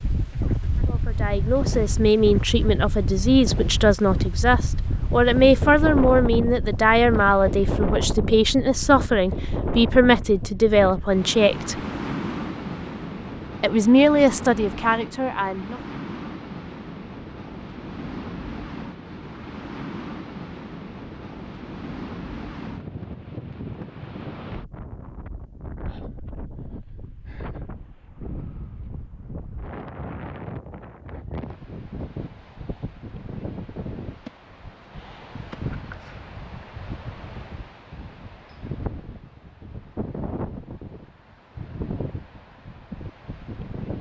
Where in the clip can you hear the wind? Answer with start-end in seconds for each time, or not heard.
0.0-43.9.